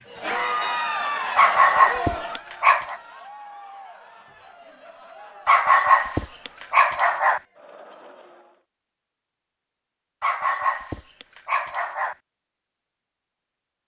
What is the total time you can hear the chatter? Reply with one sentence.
You can hear the chatter for 9 seconds altogether.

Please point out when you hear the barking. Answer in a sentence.
The barking can be heard from 1.4 to 3.0 s, from 5.5 to 7.4 s and from 10.2 to 12.2 s.